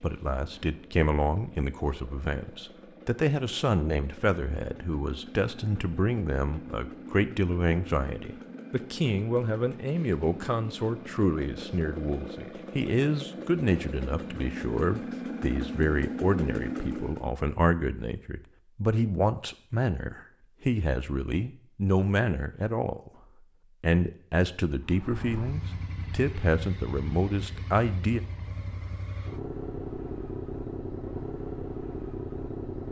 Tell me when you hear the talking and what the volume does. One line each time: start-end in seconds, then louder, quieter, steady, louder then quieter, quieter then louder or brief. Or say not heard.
0.0-23.1 steady
23.8-28.2 steady.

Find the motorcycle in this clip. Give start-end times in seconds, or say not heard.
0.0-17.4, 24.8-32.8.